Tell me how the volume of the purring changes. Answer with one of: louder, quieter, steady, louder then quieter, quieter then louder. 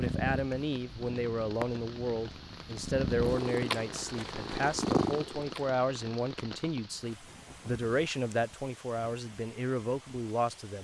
louder.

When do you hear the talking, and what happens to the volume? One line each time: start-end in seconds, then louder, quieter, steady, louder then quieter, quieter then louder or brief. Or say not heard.
0.0-10.8 steady.